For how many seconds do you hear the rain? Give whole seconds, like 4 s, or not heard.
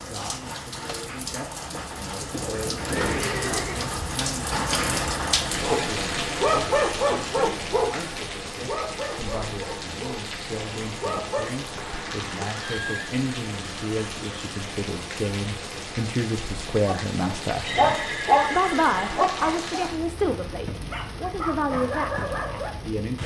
23 s.